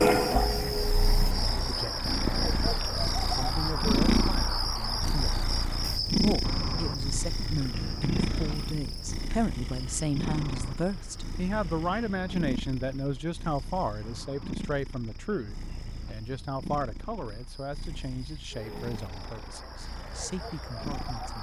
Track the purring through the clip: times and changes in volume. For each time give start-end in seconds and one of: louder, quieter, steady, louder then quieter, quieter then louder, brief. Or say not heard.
0.0-21.3 quieter.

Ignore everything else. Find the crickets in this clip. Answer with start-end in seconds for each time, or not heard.
0.0-21.3.